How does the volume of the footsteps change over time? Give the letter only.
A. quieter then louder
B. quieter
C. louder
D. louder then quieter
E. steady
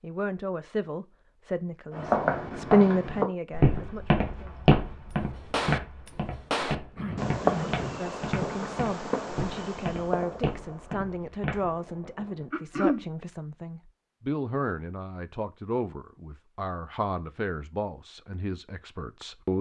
B.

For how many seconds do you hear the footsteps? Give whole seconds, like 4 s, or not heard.
10 s.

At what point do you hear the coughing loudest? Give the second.
13 s.